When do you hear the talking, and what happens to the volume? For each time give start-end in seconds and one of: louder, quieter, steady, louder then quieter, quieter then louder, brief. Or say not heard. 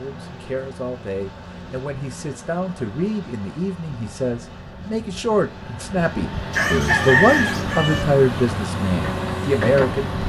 0.0-10.1 louder.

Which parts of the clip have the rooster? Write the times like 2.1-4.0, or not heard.
6.5-8.1.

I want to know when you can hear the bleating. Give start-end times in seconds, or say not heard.
not heard.